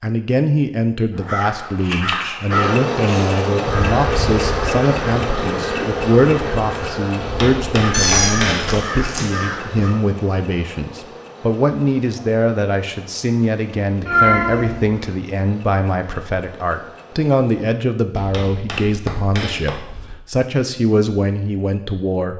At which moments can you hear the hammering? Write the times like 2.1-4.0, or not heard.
7.2-8.8, 18.1-20.1.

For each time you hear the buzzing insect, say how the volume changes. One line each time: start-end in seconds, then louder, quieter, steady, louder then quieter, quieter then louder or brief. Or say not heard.
2.5-17.7 quieter.